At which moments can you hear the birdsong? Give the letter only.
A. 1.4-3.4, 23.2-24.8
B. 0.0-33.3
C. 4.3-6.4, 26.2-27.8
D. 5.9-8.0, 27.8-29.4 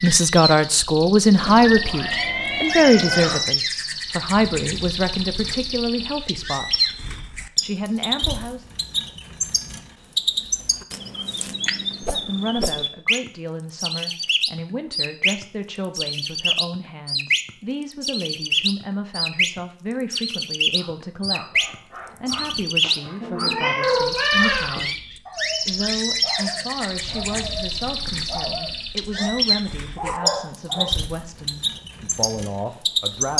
B.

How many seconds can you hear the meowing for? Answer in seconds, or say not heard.
4 s.